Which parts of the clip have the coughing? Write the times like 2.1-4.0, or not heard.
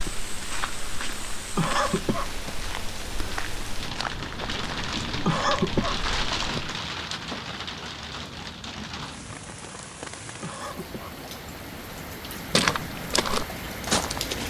1.6-2.3, 5.2-6.0, 10.4-11.2.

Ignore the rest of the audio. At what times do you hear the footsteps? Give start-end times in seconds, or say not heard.
0.0-6.8, 12.5-14.4.